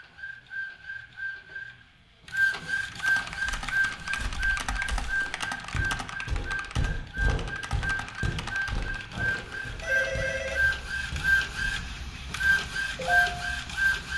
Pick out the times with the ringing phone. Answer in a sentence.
You can hear the ringing phone from 9.1 to 10.6 s.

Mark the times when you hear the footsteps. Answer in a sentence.
You can hear the footsteps from 3.3 to 11.8 s.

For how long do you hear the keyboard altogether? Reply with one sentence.
The keyboard can be heard for 7 seconds in total.